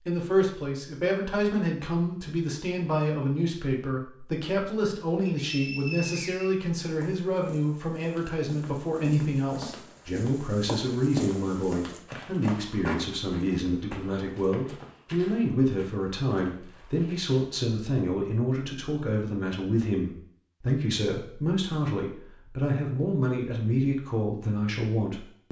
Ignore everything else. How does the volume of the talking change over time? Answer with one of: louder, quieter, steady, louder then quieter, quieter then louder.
steady.